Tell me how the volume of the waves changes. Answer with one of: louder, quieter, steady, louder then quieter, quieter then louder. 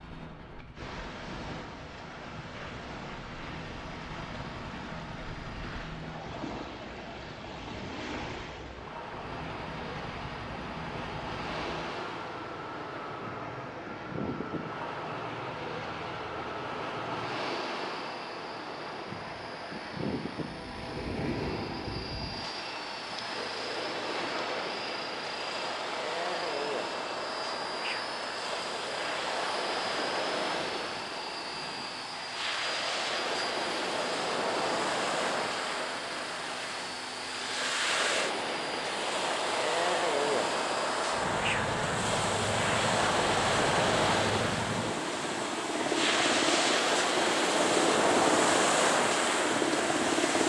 louder.